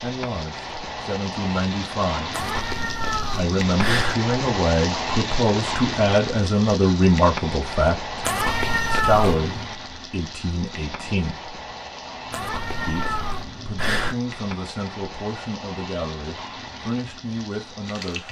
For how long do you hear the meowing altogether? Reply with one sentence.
You can hear the meowing for 5 seconds altogether.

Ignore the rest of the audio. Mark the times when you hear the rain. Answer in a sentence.
The rain can be heard from 0.0 to 18.2 s.